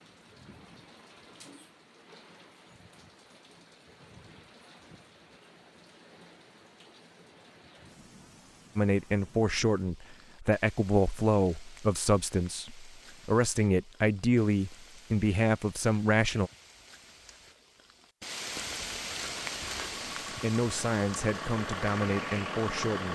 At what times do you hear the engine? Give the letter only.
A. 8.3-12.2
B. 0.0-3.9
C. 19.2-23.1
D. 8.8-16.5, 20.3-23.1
C.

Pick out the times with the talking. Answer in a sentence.
You can hear the talking from 8.8 to 16.5 s and from 20.3 to 23.1 s.